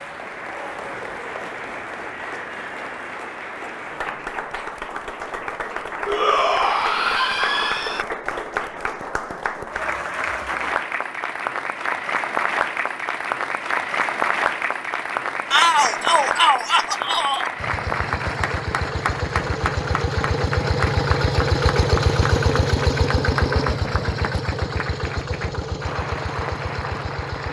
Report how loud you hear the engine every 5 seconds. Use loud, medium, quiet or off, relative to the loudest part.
off, off, off, medium, loud, medium.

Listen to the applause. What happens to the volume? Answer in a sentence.
The loudness of the applause goes up, then down.